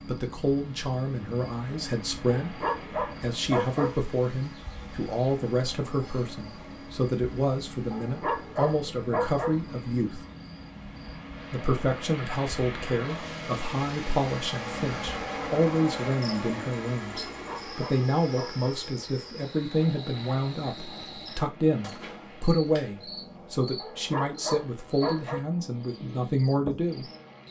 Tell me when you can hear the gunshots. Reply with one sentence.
You can hear the gunshots from 21.8 to 22.4 s.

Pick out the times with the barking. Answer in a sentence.
You can hear the barking from 2.2 to 4.0 s, from 7.9 to 9.6 s, from 17.3 to 18.8 s and from 23.8 to 25.4 s.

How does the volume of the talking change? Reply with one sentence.
The loudness of the talking stays about the same.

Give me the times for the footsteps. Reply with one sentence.
The footsteps can't be heard in this clip.